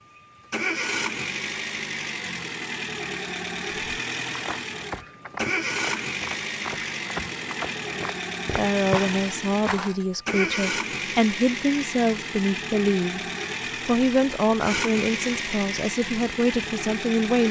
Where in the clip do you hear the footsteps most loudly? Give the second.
9 s.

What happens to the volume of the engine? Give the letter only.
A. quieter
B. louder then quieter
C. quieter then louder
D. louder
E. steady
E.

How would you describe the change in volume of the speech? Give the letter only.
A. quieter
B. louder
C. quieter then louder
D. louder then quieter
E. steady
E.